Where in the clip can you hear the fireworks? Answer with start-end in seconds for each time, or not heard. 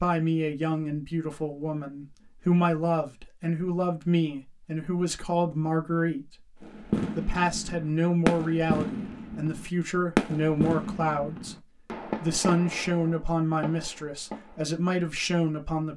6.6-14.7.